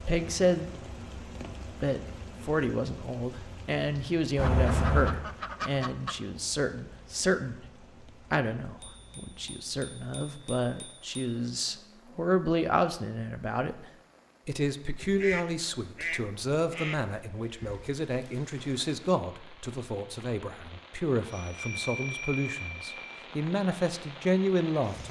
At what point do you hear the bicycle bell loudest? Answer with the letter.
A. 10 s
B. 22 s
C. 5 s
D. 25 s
C.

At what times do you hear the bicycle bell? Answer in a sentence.
You can hear the bicycle bell from 4.3 to 5.2 s, from 8.8 to 11.1 s and from 21.2 to 23.2 s.